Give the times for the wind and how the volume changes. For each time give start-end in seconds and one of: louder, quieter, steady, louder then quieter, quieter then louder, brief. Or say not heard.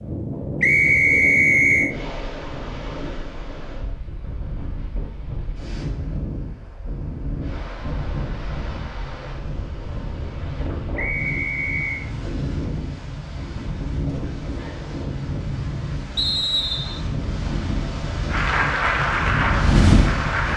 0.0-20.5 louder.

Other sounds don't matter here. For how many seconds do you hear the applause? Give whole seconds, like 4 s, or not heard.
2 s.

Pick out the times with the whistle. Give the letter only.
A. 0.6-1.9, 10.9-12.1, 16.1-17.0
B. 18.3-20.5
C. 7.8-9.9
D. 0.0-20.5
A.